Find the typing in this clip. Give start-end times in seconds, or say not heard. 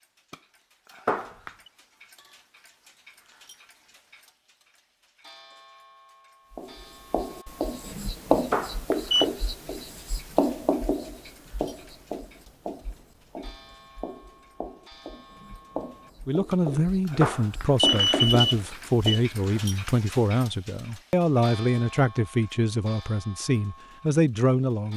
not heard.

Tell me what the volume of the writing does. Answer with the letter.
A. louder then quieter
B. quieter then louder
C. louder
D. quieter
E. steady
B.